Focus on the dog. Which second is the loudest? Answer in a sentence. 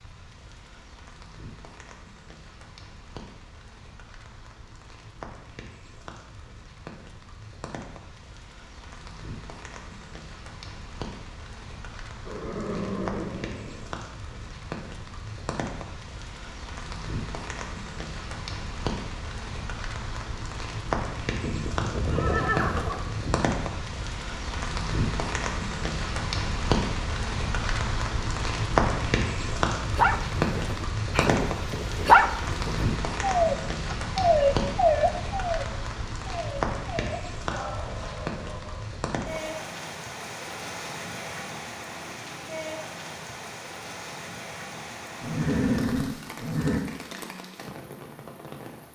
The volume of the dog peaks at 32 seconds.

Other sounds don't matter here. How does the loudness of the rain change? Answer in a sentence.
The loudness of the rain goes up, then down.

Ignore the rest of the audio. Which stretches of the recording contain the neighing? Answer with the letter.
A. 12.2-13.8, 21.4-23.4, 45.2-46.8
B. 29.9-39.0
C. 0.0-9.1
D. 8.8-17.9
A.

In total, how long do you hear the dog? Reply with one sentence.
The dog can be heard for 9 seconds in total.